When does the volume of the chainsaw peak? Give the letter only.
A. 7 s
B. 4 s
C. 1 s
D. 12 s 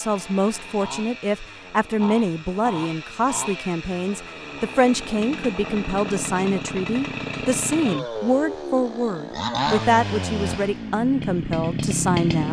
D.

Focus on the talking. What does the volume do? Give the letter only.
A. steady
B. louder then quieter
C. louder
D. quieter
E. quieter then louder
A.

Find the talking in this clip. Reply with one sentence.
The talking can be heard from 0.0 to 12.4 s.